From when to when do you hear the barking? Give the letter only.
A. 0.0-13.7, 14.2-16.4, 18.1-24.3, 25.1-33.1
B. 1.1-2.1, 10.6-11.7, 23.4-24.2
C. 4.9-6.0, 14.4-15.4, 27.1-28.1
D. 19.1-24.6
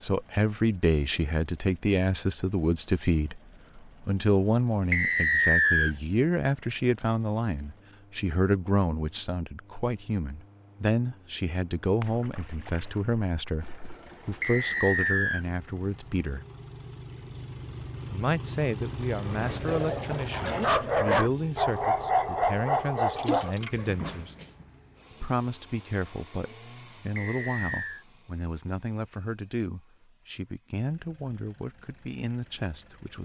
D.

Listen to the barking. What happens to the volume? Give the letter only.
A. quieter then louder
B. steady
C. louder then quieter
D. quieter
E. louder
C.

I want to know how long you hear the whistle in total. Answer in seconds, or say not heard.
3 s.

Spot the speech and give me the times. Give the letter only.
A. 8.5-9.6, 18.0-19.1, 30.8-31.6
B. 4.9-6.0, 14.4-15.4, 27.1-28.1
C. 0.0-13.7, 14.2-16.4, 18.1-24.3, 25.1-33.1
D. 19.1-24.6
C.